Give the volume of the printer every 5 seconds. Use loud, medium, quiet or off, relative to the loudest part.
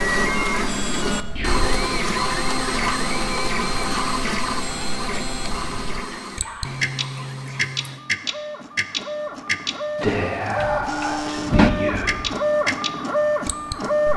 loud, medium, loud.